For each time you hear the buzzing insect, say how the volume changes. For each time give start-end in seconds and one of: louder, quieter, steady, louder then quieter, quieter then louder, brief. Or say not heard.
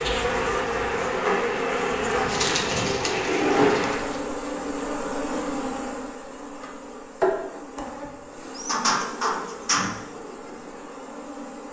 0.0-11.6 quieter.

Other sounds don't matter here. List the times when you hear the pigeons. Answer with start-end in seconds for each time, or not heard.
2.2-4.2, 8.4-9.9.